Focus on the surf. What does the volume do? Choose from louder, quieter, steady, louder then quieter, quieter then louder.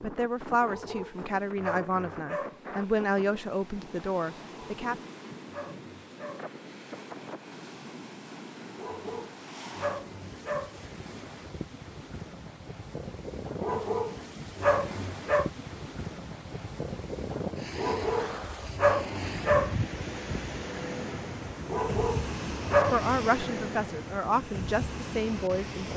louder.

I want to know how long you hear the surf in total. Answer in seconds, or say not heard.
26 s.